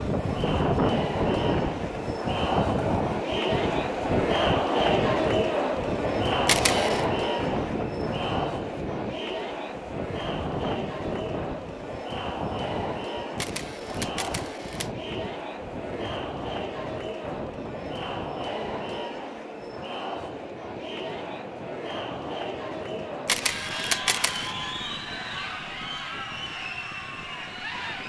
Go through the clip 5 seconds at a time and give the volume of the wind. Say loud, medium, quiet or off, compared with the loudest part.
loud, medium, medium, quiet, quiet, quiet.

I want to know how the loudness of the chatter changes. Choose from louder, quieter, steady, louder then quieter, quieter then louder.
quieter.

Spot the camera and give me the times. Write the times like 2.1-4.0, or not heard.
6.5-7.0, 13.3-14.9, 23.2-24.6.